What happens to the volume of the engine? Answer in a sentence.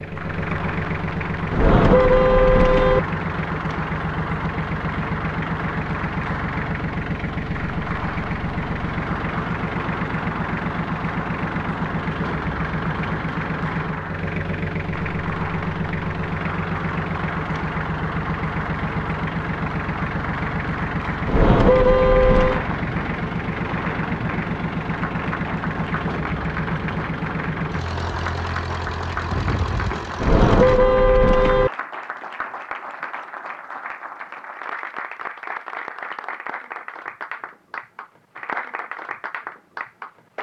The loudness of the engine stays about the same.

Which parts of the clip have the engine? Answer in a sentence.
You can hear the engine from 0.0 to 30.8 s.